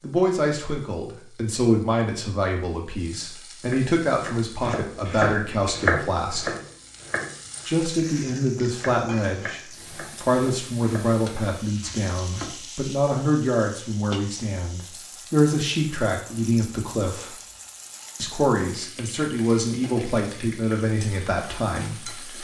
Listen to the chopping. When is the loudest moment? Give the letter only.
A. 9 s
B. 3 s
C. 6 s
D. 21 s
C.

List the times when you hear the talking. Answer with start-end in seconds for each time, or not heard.
0.0-6.5, 7.7-17.4, 18.1-22.3.